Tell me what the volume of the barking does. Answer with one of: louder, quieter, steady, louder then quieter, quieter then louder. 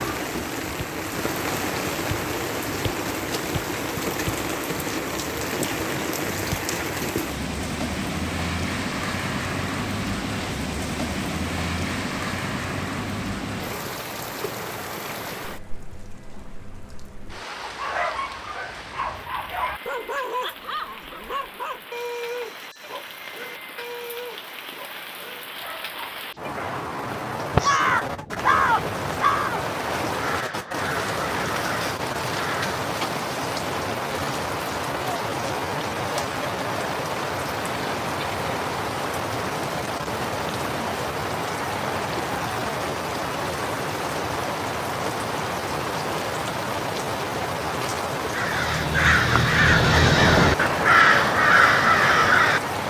quieter.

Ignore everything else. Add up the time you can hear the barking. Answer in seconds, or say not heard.
9 s.